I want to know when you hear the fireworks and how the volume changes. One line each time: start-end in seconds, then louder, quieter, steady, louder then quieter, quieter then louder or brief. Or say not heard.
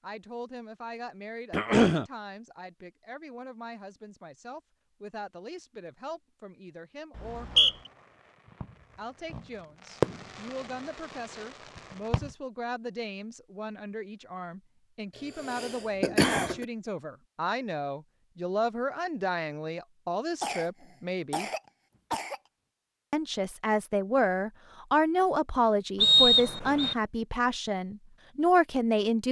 7.2-12.3 louder then quieter.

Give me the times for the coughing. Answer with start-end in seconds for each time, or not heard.
1.5-2.0, 15.2-16.6, 20.4-22.4.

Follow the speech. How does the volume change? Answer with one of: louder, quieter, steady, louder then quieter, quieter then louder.
louder.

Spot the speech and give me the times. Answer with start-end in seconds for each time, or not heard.
0.0-7.8, 8.9-21.5, 23.1-29.2.